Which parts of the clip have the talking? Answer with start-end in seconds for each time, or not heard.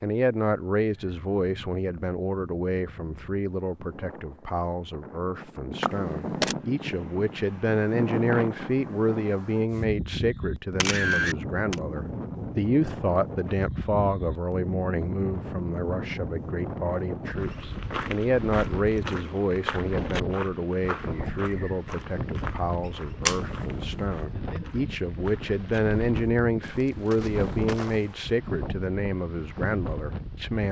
0.0-30.6.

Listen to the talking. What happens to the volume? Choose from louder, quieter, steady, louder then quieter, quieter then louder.
steady.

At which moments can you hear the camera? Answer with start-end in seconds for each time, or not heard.
5.8-6.5, 10.8-11.8, 23.2-24.1.